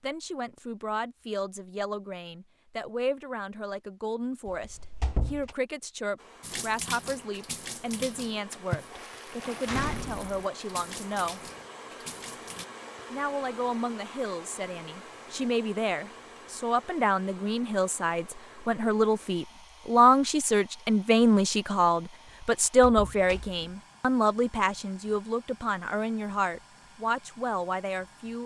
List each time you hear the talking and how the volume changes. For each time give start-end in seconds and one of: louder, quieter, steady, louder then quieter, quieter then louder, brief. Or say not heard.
0.0-11.5 steady
13.1-28.4 louder then quieter.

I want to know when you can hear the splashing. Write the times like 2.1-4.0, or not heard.
6.4-12.7.